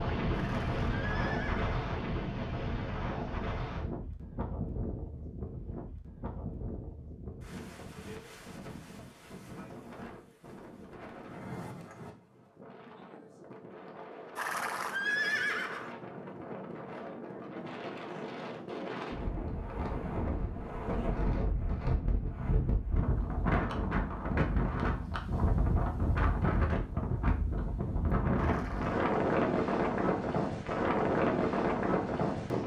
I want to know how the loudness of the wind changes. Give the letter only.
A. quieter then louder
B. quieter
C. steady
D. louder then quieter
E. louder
A.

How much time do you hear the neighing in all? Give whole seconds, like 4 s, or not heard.
4 s.